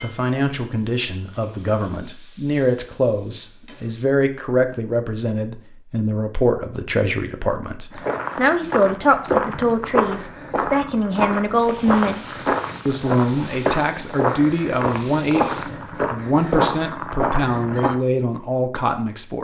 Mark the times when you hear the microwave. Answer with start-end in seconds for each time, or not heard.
not heard.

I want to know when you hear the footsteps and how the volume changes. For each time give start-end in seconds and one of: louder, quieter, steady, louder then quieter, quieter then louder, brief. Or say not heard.
7.9-17.9 steady.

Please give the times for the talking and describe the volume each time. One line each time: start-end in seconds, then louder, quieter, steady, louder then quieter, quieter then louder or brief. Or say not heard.
0.0-19.4 steady.